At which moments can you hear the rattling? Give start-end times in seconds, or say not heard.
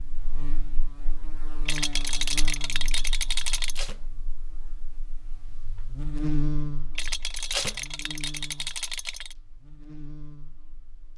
1.6-3.9, 7.0-9.3.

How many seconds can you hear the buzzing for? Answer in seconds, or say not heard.
11 s.